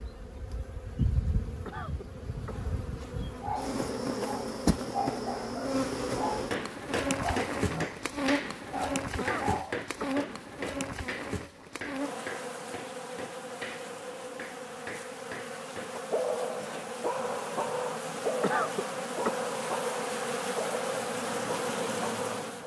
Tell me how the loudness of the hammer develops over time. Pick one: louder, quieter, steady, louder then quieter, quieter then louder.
quieter.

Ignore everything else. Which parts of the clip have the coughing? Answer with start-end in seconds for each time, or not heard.
1.6-2.7, 9.2-10.2, 18.4-19.5.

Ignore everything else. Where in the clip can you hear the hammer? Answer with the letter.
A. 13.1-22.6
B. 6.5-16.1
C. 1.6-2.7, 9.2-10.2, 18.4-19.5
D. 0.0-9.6
B.